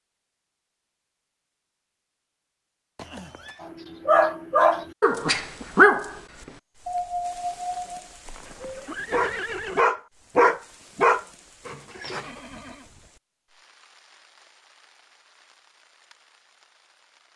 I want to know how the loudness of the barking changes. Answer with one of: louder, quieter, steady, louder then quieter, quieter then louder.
quieter then louder.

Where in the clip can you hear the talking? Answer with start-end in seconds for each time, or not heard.
not heard.